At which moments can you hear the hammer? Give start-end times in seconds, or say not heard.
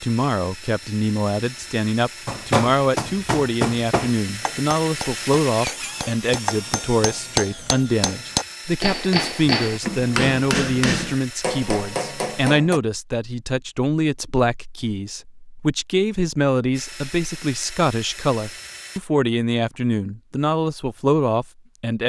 2.2-12.8.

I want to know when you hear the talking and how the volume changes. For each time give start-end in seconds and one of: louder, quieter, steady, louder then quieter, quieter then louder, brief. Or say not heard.
0.0-22.0 steady.